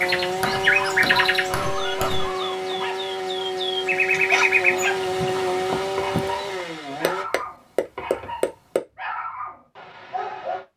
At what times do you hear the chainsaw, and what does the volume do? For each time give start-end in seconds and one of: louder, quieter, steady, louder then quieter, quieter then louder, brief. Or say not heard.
0.0-7.2 steady.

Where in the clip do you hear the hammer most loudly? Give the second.
8 s.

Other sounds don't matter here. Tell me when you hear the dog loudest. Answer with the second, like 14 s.
4 s.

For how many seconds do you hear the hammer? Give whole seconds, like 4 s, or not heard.
4 s.